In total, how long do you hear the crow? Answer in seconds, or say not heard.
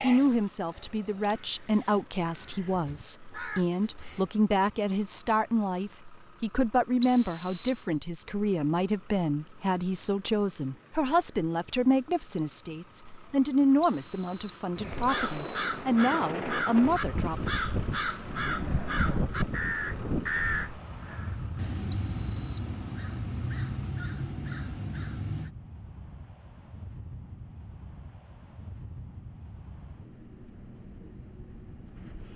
15 s.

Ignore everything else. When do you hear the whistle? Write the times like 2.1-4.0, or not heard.
7.0-7.8, 13.8-15.7, 21.9-22.6.